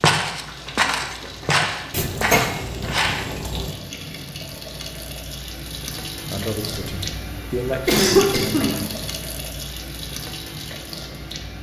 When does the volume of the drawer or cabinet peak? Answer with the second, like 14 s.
2 s.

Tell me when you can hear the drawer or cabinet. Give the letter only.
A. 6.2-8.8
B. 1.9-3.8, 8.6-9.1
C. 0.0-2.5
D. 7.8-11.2
B.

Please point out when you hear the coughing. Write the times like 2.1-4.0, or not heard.
7.7-8.8.